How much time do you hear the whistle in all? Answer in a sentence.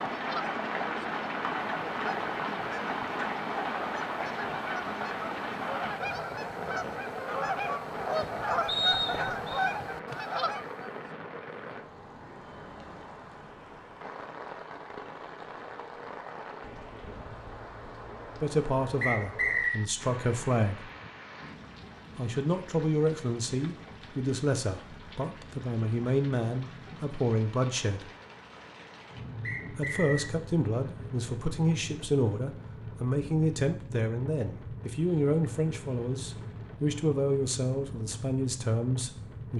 You can hear the whistle for 3 seconds altogether.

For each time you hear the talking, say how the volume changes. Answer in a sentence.
The talking can be heard briefly from 18.4 to 20.9 s; from 22.1 to 28.1 s, getting quieter then louder; and from 29.7 to 39.5 s, at a steady volume.